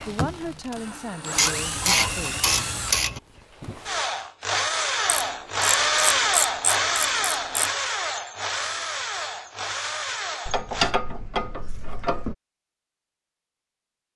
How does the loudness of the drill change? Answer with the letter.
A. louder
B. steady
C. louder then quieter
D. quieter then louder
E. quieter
C.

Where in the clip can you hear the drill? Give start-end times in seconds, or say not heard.
0.0-10.9.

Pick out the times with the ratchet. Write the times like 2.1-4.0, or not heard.
1.4-3.2, 5.0-7.7, 10.4-12.3.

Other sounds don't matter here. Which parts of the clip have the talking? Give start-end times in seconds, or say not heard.
0.0-2.4.